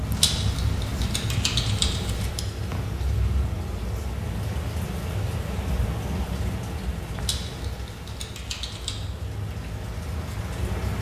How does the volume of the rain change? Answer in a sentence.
The volume of the rain goes down.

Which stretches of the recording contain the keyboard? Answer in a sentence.
You can hear the keyboard from 0.1 to 2.4 s and from 7.2 to 9.1 s.